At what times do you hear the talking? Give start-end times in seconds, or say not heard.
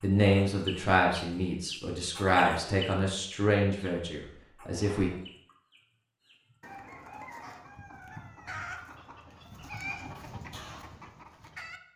0.0-5.1.